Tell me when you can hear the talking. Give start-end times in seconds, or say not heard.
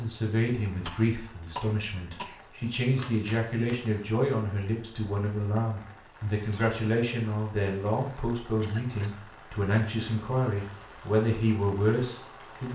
0.0-12.7.